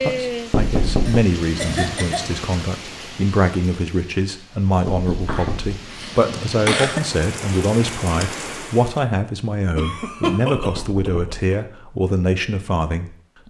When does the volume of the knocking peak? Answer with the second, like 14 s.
1 s.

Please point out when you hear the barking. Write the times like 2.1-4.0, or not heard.
not heard.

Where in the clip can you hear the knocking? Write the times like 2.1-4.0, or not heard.
0.5-1.2, 4.8-5.8, 10.6-11.6.